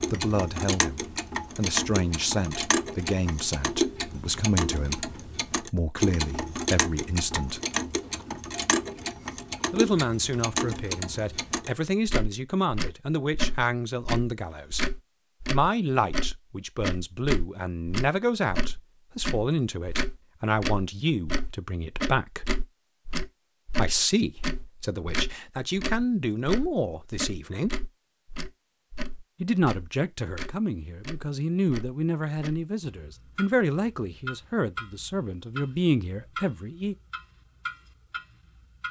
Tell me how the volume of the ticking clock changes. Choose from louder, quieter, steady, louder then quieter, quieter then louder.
quieter.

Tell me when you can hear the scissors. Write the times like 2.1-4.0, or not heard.
not heard.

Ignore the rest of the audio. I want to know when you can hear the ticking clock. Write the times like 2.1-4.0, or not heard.
0.0-38.8.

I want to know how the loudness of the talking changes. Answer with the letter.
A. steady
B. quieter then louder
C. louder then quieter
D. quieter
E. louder
A.